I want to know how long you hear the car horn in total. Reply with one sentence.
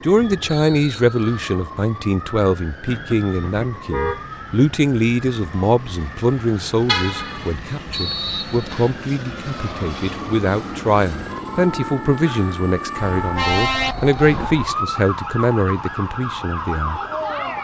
You can hear the car horn for 4 seconds altogether.